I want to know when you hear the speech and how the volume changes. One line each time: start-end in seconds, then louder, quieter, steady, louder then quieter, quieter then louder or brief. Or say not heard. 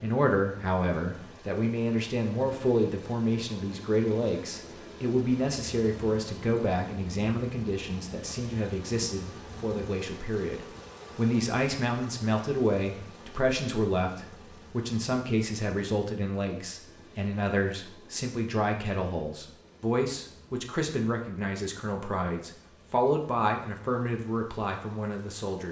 0.0-25.6 steady.